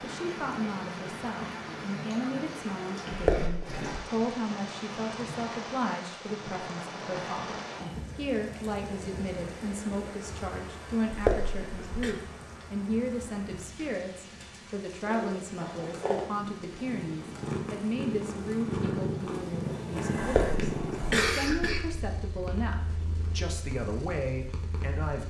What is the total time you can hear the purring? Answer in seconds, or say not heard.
10 s.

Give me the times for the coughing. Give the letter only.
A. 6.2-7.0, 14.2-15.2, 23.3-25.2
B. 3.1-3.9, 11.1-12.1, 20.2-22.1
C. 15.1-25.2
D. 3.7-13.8
B.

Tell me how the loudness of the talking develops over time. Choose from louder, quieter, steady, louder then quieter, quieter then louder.
steady.